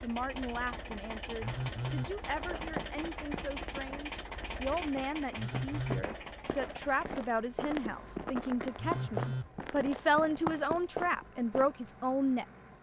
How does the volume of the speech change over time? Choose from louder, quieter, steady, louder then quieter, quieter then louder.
louder.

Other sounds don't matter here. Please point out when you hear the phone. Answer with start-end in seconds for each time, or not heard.
1.4-2.1, 5.3-6.0, 8.8-9.5.